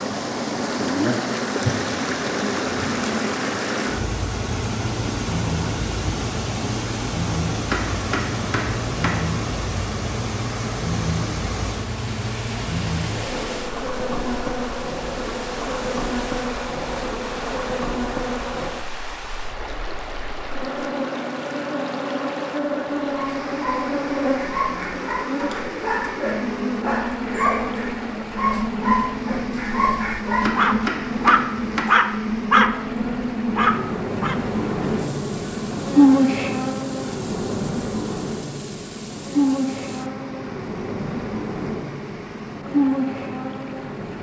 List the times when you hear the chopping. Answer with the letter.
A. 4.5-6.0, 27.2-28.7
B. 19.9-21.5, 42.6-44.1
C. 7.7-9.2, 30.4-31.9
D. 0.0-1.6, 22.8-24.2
C.